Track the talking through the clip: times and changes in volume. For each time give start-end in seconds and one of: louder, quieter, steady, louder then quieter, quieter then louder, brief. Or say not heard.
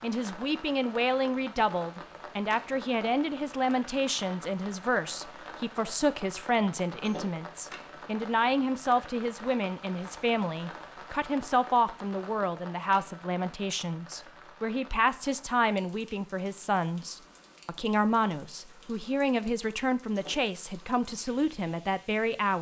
0.0-22.5 steady.